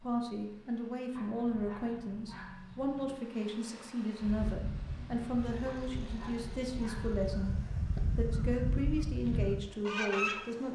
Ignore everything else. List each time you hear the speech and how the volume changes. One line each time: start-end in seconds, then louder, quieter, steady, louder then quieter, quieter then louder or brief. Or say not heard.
0.0-10.6 steady.